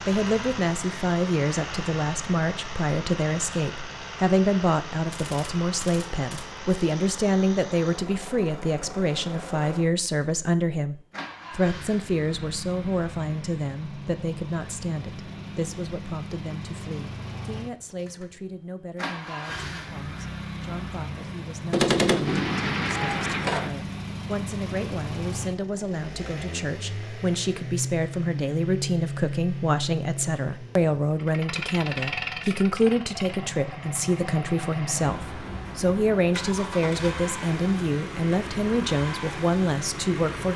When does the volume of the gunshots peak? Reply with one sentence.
The volume of the gunshots peaks at 22 seconds.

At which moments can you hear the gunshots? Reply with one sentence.
The gunshots can be heard from 5.1 to 6.5 s and from 21.7 to 23.7 s.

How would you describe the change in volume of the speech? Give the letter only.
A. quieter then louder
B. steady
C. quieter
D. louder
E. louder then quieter
A.